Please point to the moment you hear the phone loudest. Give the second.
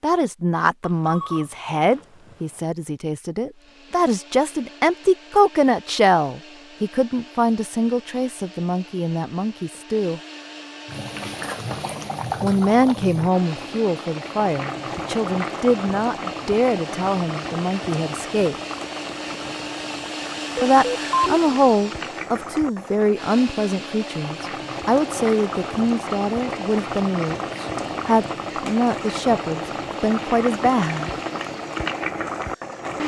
21 s.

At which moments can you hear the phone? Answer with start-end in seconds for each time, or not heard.
0.8-2.6, 20.6-21.4.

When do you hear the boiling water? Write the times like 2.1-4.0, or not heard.
10.8-33.0.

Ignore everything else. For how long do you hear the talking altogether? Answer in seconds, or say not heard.
27 s.